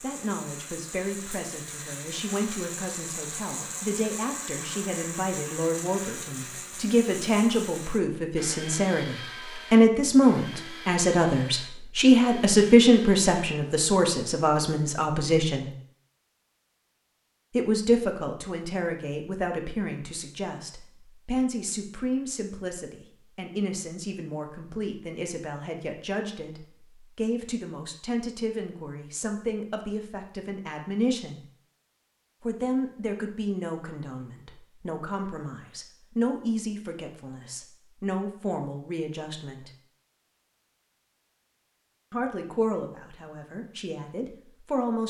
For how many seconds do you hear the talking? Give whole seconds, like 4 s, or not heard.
40 s.